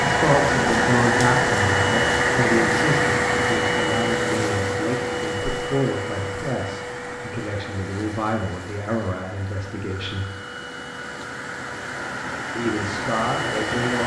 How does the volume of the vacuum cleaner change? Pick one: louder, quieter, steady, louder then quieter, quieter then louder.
quieter then louder.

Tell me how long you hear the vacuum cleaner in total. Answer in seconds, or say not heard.
14 s.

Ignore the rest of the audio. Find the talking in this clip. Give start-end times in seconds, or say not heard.
0.0-10.2, 12.6-14.0.